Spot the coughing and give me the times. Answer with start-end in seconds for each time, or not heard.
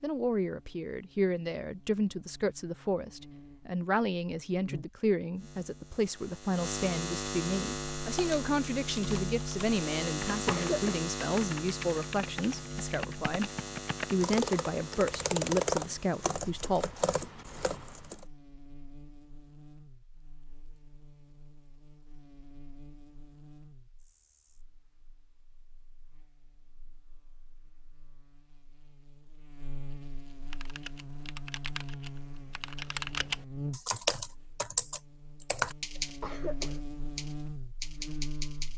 10.4-11.1, 36.2-36.8.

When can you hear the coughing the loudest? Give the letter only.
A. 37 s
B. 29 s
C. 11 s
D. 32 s
C.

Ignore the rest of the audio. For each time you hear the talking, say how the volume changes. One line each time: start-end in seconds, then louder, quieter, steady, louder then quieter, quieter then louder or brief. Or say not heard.
0.0-13.5 steady
14.1-16.9 brief.